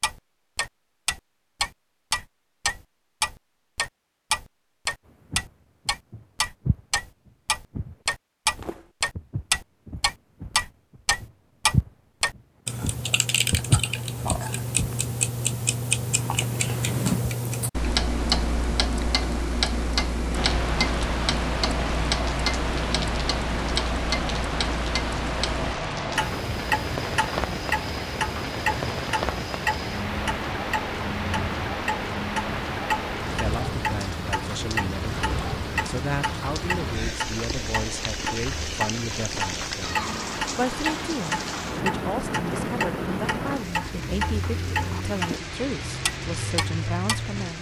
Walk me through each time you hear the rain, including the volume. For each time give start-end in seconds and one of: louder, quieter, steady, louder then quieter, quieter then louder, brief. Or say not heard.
20.3-47.5 steady.